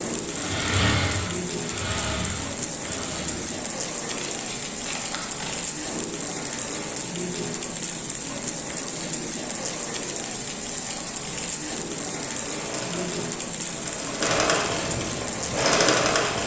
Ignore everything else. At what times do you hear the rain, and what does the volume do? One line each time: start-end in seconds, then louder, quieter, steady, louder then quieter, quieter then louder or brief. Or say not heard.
0.0-16.4 steady.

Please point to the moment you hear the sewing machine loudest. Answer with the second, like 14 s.
16 s.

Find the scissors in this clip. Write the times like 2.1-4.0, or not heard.
4.0-5.6.